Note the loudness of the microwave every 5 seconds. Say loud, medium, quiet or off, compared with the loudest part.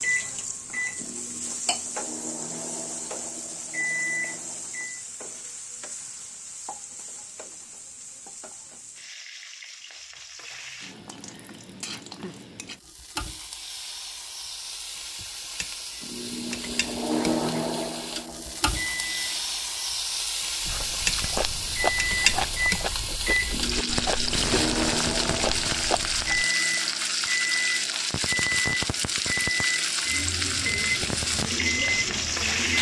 medium, off, off, loud, loud, loud, loud.